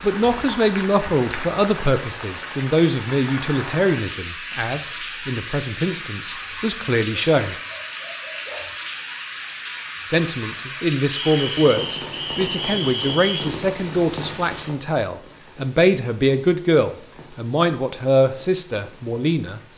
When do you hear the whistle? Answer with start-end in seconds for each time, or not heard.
11.1-13.5.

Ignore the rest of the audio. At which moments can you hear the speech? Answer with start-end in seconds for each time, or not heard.
0.0-7.5, 10.1-19.7.